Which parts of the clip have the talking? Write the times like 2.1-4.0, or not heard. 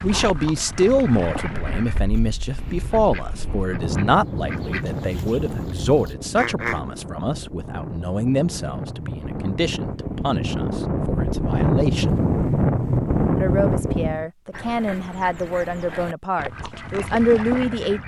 0.0-12.1, 13.3-18.0.